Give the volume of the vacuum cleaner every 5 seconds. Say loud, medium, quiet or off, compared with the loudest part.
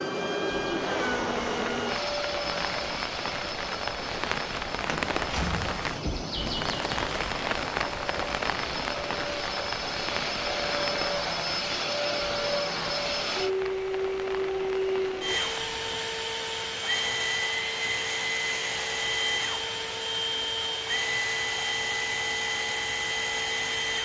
loud, medium, loud, loud, loud.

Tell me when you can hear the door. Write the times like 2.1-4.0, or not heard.
4.8-6.2.